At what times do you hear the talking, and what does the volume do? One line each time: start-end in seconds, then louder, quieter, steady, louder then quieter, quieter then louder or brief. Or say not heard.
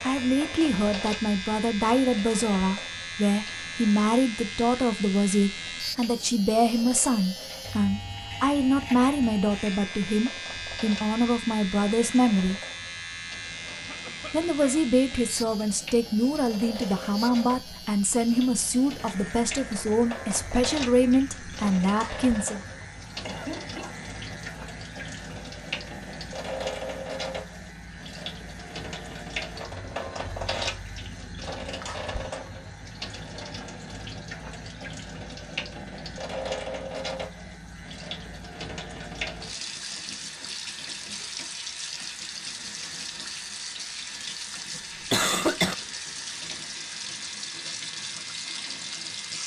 0.0-12.6 steady
14.3-22.6 steady.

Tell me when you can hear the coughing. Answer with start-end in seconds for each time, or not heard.
13.7-14.8, 22.8-23.9, 44.8-45.8.